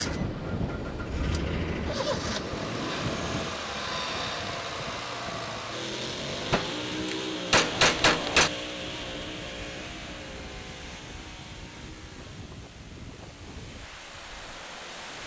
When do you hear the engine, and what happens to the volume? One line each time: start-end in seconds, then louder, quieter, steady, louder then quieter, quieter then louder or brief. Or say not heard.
0.0-15.2 quieter.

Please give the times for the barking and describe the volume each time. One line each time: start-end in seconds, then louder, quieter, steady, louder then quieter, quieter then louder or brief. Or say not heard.
not heard.